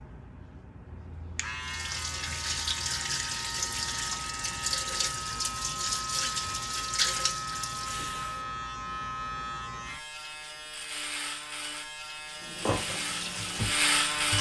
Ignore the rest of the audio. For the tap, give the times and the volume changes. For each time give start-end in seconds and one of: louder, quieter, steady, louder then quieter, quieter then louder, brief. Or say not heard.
1.6-8.4 steady
12.3-14.3 brief.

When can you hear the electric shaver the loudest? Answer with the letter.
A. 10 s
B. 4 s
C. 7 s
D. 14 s
D.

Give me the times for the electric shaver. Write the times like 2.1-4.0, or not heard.
0.0-14.3.